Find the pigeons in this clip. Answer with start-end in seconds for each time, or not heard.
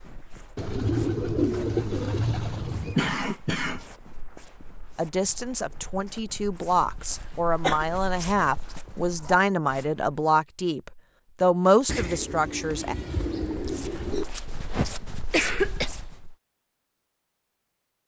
0.6-3.0, 11.8-14.2.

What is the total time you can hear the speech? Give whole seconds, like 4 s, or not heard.
8 s.